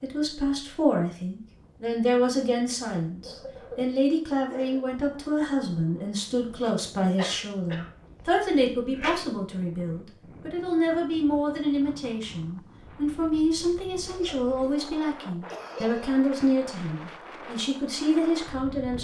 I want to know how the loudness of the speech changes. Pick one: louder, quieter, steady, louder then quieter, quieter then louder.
steady.